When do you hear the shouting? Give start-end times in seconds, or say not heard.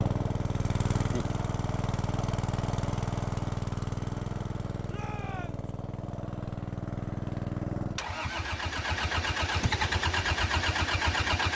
4.8-5.7.